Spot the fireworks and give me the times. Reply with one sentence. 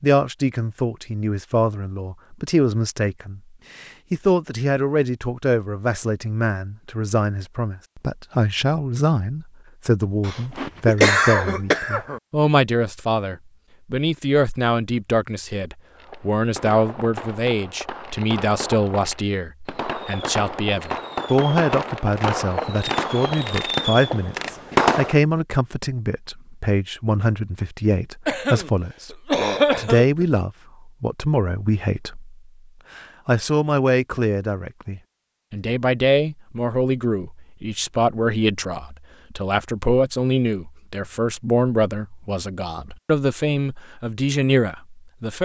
You can hear the fireworks from 15.9 to 25.2 s.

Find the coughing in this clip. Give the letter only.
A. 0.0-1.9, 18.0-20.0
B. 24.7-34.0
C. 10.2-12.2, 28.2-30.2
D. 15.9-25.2
C.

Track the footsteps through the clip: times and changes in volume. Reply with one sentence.
The footsteps can't be heard in this clip.